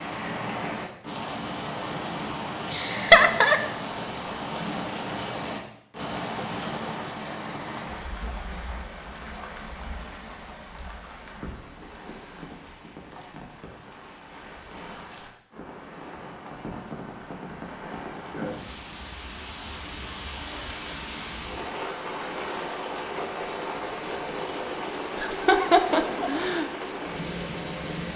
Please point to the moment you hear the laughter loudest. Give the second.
3 s.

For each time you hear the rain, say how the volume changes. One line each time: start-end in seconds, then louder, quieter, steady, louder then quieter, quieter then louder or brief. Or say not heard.
0.0-28.1 quieter then louder.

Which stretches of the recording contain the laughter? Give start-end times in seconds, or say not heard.
2.7-3.6, 25.1-26.6.